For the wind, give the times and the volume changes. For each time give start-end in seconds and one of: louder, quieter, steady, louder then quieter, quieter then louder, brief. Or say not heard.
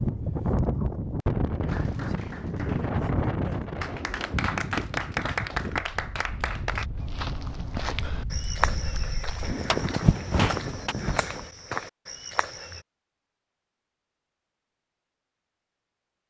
0.0-11.5 quieter then louder.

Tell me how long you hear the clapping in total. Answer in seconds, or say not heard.
7 s.